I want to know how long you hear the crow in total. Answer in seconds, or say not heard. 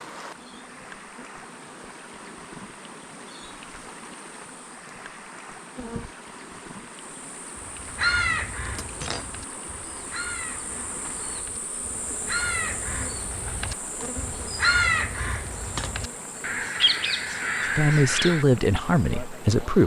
11 s.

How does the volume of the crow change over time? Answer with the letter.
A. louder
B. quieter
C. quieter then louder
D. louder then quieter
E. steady
C.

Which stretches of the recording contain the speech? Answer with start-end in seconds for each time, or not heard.
17.6-19.8.